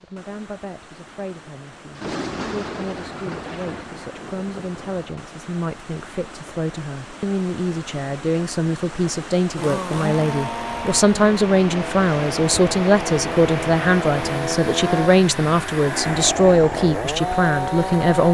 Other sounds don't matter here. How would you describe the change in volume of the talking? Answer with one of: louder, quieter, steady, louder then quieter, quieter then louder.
louder.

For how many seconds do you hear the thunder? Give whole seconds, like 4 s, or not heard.
3 s.